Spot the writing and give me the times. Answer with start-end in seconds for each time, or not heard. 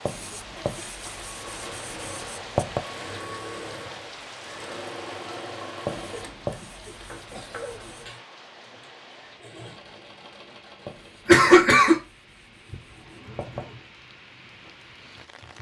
0.1-2.9, 5.8-8.2, 10.8-13.7.